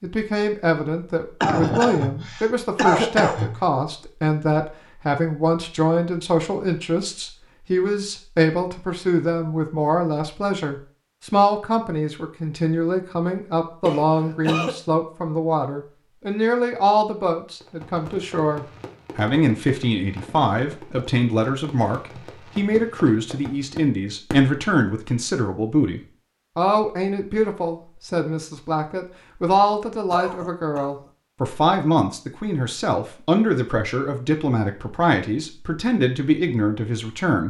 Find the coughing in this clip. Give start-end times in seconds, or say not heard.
1.4-3.6, 13.8-14.8, 30.1-30.9.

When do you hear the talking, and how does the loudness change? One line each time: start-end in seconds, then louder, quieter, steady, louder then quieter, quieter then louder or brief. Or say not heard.
0.0-37.4 steady.